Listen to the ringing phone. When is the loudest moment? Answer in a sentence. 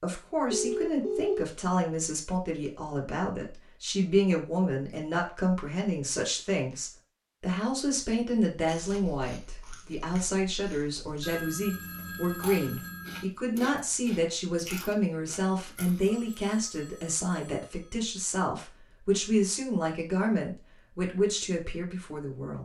The loudest moment of the ringing phone is at 1 second.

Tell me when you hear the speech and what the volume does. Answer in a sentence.
The speech can be heard from 0.0 to 22.6 s, at a steady volume.